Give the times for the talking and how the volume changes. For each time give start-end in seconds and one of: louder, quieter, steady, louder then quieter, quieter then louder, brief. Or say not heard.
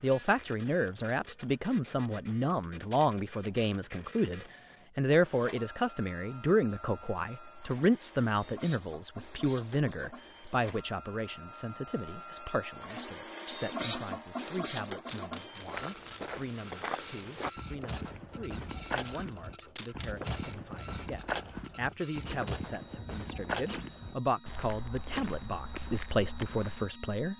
0.0-27.3 quieter then louder.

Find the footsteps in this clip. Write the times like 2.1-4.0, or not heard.
15.5-26.9.